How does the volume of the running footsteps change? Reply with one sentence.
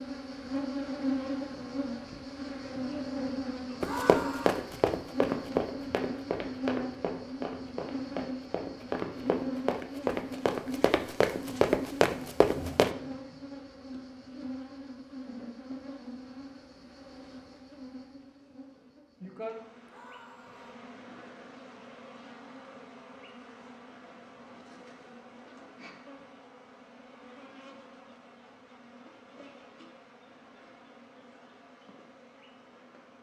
The volume of the running footsteps goes down, then up.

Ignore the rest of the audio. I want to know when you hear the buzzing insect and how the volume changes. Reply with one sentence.
The buzzing insect can be heard from 0.0 to 33.1 s, getting quieter.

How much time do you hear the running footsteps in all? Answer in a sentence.
The running footsteps can be heard for 9 seconds in total.